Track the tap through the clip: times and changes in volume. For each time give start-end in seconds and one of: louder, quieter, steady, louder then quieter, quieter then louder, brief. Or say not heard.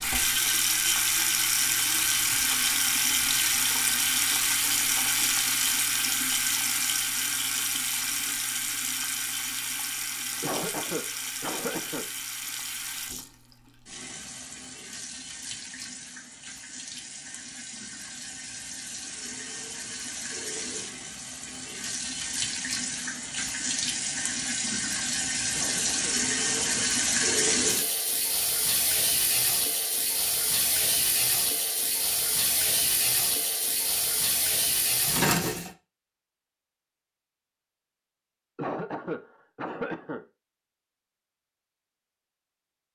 0.0-35.7 quieter then louder.